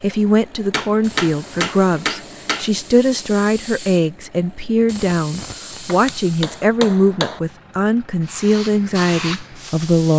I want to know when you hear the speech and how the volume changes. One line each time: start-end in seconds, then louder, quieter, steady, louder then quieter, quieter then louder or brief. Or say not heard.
0.0-10.1 steady.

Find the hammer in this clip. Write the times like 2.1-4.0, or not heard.
0.7-2.7, 5.8-7.4.